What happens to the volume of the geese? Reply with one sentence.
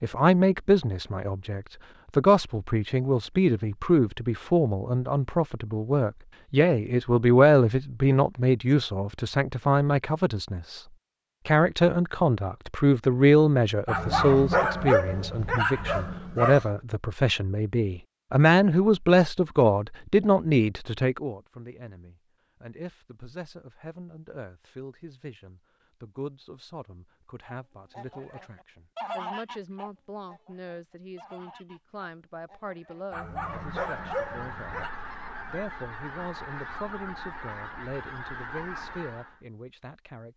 The loudness of the geese goes down, then up.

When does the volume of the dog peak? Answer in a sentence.
The volume of the dog peaks at 15 seconds.